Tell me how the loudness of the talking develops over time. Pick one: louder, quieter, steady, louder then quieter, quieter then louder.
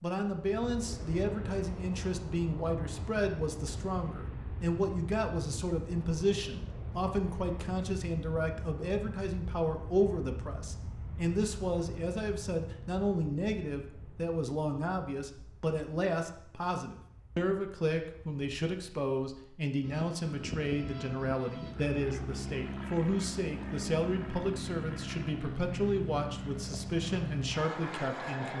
steady.